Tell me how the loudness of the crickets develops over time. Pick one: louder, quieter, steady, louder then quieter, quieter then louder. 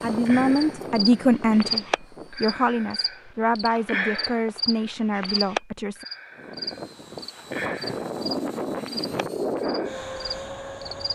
quieter.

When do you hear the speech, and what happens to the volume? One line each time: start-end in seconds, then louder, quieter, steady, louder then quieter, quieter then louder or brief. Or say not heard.
0.0-6.0 quieter.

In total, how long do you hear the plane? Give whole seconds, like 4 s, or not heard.
8 s.